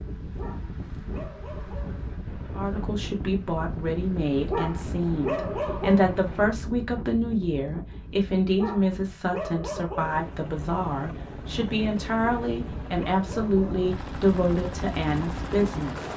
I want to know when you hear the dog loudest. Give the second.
5 s.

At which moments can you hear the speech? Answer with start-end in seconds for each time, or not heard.
2.5-16.1.